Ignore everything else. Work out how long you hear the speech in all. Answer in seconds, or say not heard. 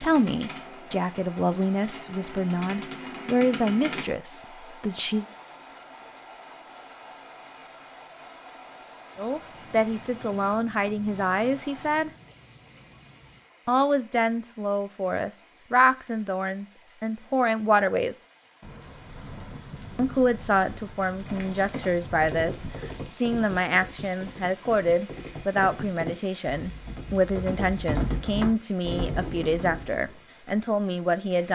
24 s.